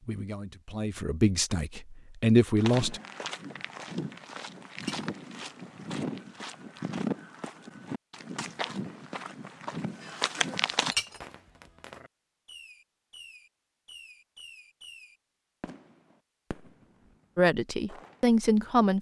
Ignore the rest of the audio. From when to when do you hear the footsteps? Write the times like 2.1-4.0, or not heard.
2.5-10.9.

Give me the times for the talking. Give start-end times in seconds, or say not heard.
0.1-3.0, 17.4-18.9.